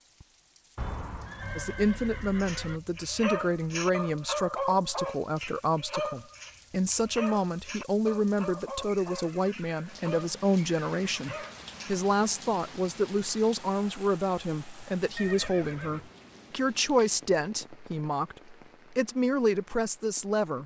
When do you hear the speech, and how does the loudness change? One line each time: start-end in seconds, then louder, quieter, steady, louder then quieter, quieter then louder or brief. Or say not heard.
1.6-20.6 steady.